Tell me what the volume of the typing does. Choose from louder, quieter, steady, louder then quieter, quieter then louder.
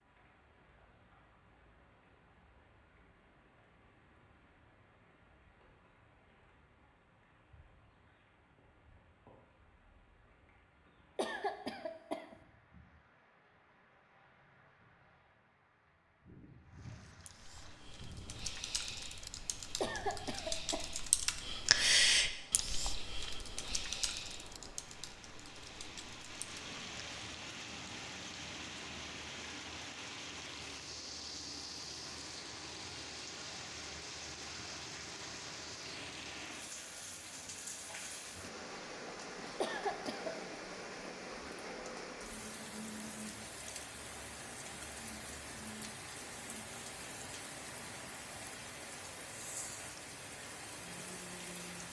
louder then quieter.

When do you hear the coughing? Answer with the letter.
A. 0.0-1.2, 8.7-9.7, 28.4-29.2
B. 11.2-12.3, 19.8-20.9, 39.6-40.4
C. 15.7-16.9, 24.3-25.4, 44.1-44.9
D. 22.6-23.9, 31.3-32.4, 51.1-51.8
B.